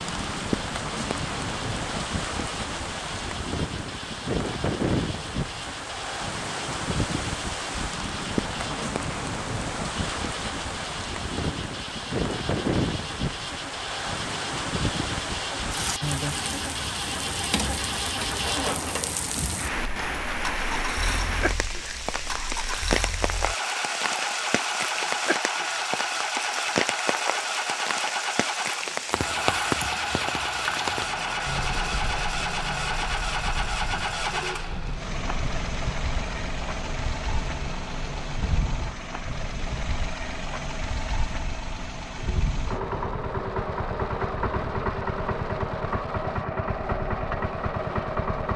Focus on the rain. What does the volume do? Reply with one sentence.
The volume of the rain goes down.